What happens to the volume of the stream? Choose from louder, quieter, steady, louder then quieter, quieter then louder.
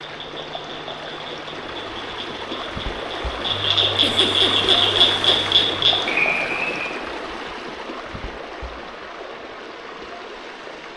louder then quieter.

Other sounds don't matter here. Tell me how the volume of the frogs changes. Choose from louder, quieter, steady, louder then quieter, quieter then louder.
louder.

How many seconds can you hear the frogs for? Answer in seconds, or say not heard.
7 s.